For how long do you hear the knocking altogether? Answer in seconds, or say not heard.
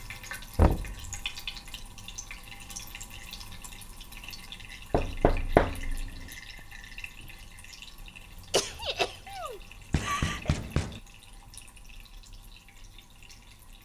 3 s.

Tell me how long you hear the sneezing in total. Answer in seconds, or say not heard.
2 s.